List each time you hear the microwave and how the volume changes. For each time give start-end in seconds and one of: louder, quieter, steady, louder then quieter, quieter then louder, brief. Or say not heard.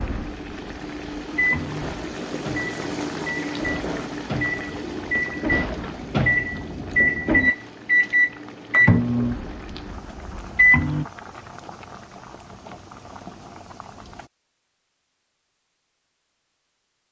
0.0-11.1 louder.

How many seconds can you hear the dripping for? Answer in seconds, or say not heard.
not heard.